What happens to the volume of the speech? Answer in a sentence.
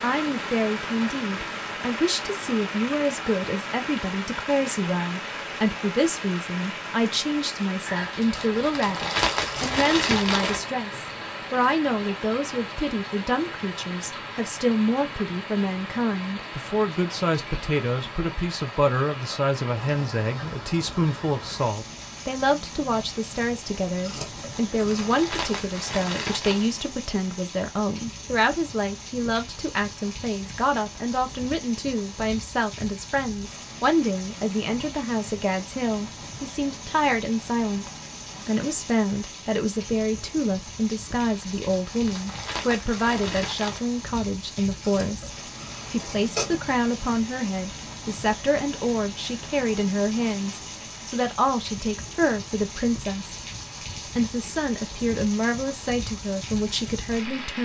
The loudness of the speech stays about the same.